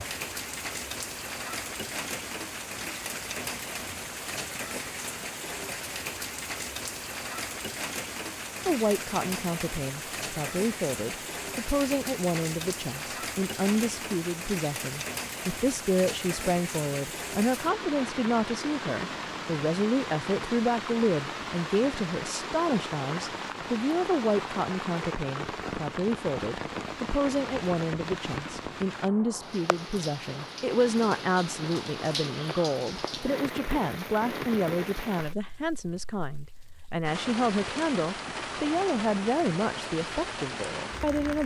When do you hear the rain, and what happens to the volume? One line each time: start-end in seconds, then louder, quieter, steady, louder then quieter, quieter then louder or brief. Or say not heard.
0.0-41.4 steady.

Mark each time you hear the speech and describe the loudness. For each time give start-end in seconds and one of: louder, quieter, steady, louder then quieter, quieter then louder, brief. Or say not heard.
8.7-41.4 steady.